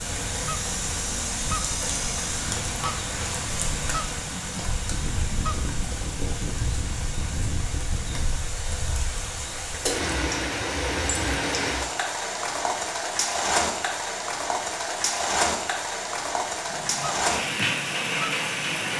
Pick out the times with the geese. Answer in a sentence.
The geese can be heard from 0.0 to 5.7 s and from 16.6 to 18.9 s.